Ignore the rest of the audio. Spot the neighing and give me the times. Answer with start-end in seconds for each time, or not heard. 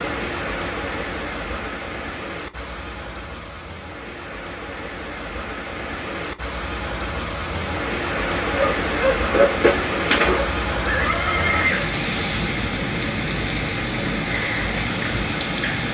10.8-11.9.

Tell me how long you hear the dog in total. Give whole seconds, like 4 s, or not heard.
2 s.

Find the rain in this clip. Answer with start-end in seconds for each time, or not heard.
0.0-15.8.